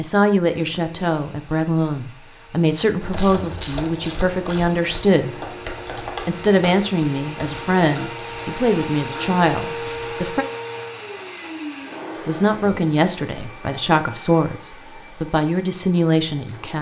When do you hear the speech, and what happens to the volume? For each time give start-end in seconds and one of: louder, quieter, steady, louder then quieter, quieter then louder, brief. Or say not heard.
0.0-5.3 steady
6.2-10.4 steady
12.2-16.7 steady.